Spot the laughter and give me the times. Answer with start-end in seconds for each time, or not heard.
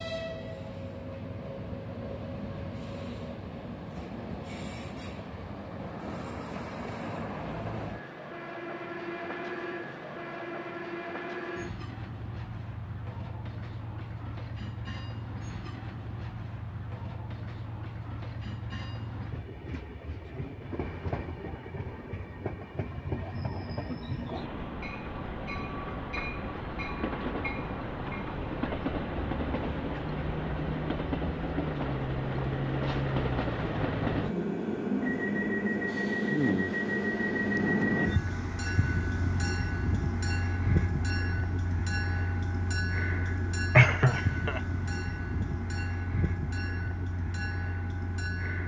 43.8-44.6.